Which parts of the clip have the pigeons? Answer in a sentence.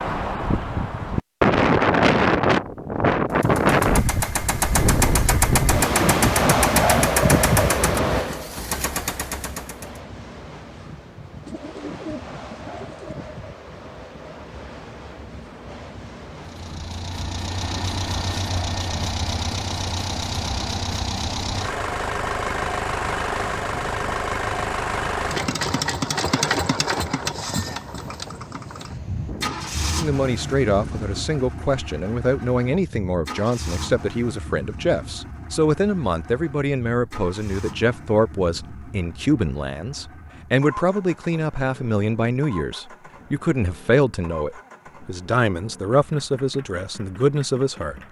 The pigeons can be heard from 11.4 to 13.4 s.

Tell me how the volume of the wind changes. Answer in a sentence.
The volume of the wind goes down.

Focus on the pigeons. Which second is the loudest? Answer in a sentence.
The loudest moment of the pigeons is at 12 seconds.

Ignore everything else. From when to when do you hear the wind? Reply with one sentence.
You can hear the wind from 0.0 to 31.3 s.